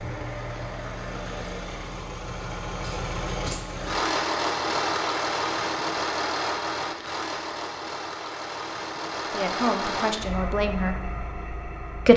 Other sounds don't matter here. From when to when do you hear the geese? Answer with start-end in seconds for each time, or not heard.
not heard.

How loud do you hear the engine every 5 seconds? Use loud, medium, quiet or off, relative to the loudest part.
loud, loud, medium.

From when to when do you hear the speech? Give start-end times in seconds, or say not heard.
9.3-10.9.